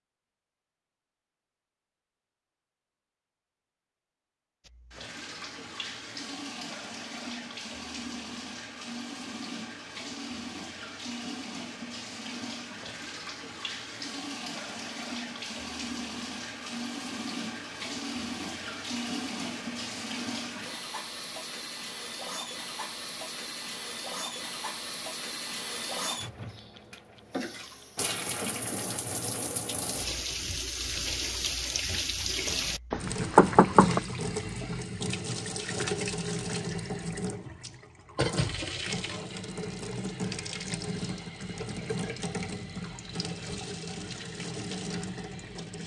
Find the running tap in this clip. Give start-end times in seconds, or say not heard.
4.7-45.8.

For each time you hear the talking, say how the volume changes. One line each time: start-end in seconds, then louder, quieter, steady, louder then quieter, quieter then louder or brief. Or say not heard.
not heard.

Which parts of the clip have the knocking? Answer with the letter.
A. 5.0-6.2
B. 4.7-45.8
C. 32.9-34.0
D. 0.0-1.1
C.